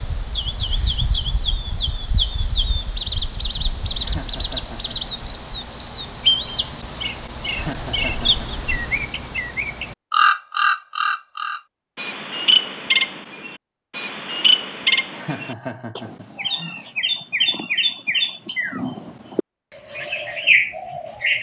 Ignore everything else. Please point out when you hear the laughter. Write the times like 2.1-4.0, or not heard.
3.9-5.0, 7.5-8.7, 15.1-16.9.